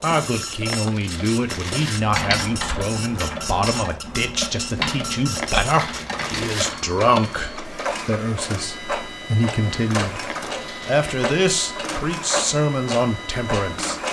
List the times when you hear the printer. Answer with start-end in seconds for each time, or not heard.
0.0-14.0.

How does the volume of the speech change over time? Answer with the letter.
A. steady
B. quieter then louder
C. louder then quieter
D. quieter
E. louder
A.